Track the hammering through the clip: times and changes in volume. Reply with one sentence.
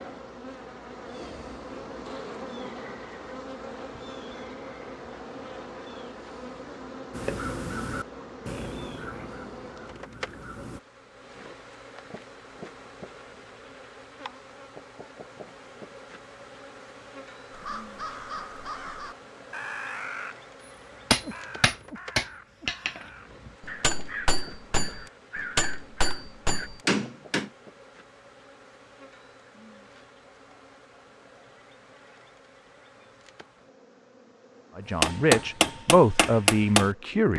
You can hear the hammering from 21.1 to 27.5 s, getting quieter then louder; and briefly from 35.0 to 37.3 s.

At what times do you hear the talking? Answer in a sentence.
You can hear the talking from 34.8 to 37.3 s.